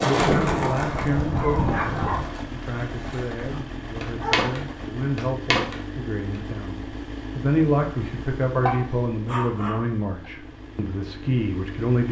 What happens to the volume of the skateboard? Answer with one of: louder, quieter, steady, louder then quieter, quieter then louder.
quieter then louder.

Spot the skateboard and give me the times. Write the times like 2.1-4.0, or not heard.
0.0-6.4.